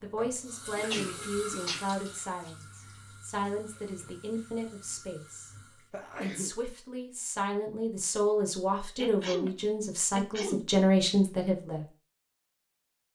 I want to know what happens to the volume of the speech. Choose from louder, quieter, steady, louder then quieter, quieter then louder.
louder.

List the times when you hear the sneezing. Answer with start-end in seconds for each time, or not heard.
0.8-1.9, 5.9-6.5, 8.9-10.7.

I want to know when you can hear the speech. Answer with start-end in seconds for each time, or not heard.
0.0-5.5, 6.2-11.8.